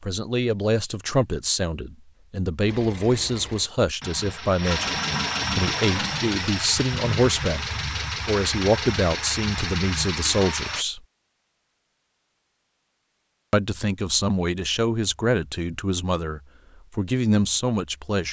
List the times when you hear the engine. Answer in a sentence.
The engine can be heard from 2.6 to 10.8 s.